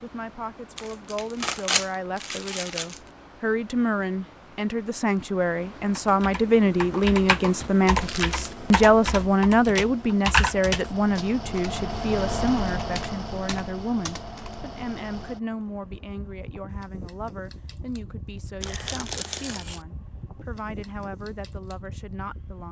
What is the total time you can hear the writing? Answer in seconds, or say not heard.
not heard.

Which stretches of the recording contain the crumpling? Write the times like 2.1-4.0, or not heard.
0.8-3.0, 8.0-8.6, 18.6-19.8.